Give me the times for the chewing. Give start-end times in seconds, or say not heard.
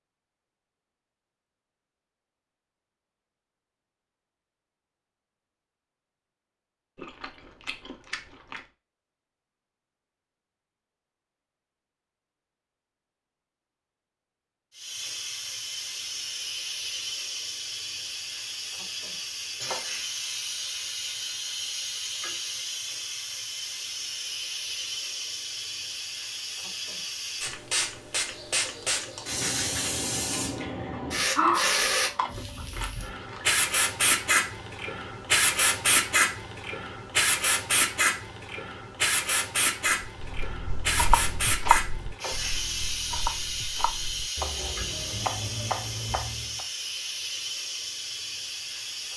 7.0-8.6, 30.9-33.5.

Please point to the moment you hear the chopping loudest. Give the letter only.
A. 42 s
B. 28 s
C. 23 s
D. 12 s
A.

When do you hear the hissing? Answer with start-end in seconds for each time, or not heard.
14.8-49.1.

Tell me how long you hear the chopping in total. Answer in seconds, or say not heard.
7 s.